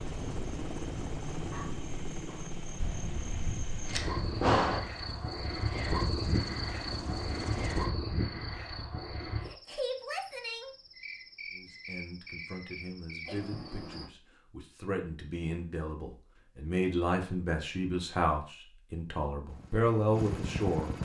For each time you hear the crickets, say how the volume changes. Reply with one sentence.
The crickets can be heard from 0.0 to 14.1 s, getting louder then quieter.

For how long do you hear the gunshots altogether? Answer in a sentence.
You can hear the gunshots for 2 seconds altogether.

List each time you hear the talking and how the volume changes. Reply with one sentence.
You can hear the talking from 11.5 to 20.9 s, getting louder.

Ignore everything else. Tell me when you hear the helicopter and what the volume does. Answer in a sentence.
The helicopter can be heard from 0.0 to 7.9 s, getting quieter then louder; and briefly from 19.4 to 21.0 s.